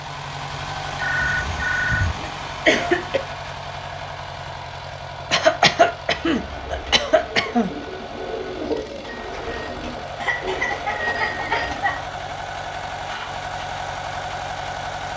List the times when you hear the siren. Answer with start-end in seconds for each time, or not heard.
not heard.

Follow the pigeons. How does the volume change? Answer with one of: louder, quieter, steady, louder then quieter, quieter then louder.
louder then quieter.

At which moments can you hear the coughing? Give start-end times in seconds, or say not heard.
1.2-3.2, 5.3-7.7, 10.2-12.0.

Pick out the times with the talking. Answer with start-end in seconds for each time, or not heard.
not heard.